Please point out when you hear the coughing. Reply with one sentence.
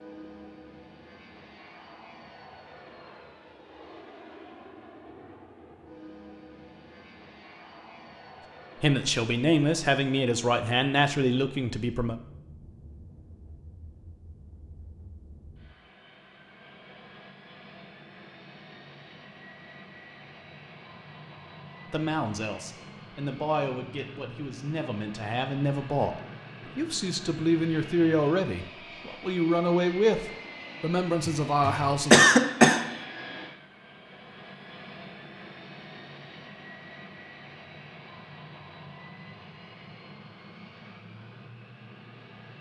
You can hear the coughing from 31.2 to 33.0 s.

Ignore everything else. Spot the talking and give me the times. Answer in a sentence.
The talking can be heard from 8.8 to 12.2 s and from 21.9 to 32.2 s.